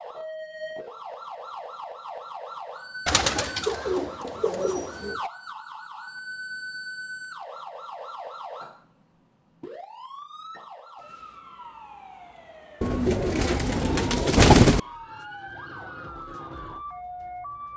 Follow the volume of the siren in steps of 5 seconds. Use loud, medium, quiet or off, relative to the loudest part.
loud, loud, medium, loud.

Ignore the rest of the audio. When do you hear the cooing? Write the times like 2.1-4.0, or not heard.
3.0-5.2, 12.8-14.8.